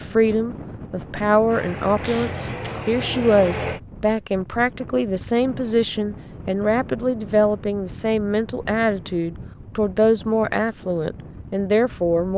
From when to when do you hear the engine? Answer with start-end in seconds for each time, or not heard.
1.4-3.8.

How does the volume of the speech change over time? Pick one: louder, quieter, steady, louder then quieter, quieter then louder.
steady.